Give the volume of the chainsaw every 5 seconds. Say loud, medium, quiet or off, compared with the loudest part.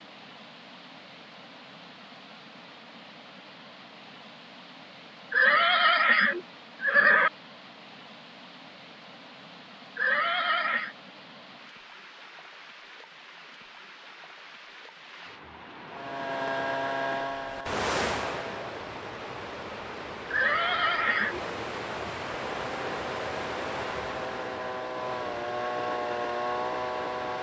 off, off, off, loud, medium, loud.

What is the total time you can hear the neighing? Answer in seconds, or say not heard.
4 s.